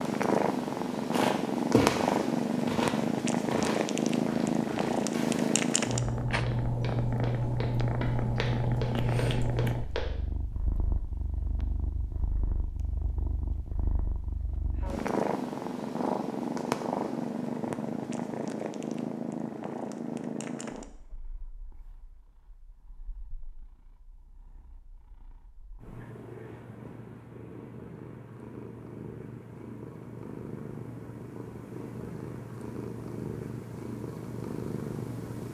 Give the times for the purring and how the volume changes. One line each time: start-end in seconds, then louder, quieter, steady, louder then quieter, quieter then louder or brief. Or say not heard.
0.0-35.4 quieter then louder.